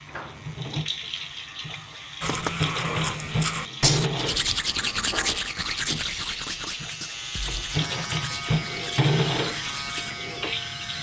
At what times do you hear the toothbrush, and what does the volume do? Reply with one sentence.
You can hear the toothbrush from 2.2 to 10.2 s, getting quieter.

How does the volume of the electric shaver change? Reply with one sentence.
The loudness of the electric shaver goes up.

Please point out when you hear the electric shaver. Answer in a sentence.
The electric shaver can be heard from 0.0 to 10.9 s.